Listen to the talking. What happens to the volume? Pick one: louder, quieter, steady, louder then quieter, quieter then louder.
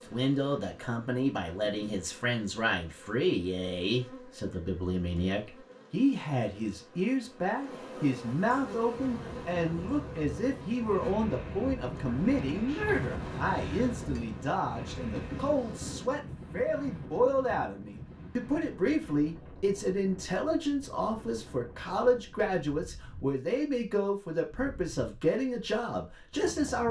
steady.